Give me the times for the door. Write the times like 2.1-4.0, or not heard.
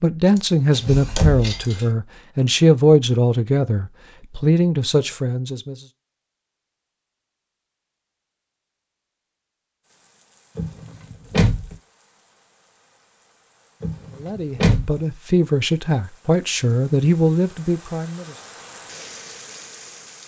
0.8-1.8, 10.6-11.8, 13.8-15.0.